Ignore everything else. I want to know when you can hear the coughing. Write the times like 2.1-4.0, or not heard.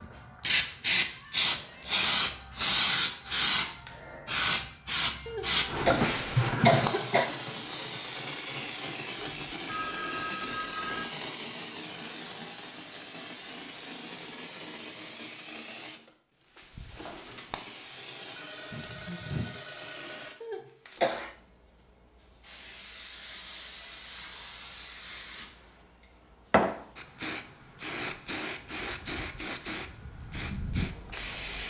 5.2-7.2, 20.4-21.3.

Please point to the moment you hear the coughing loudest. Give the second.
7 s.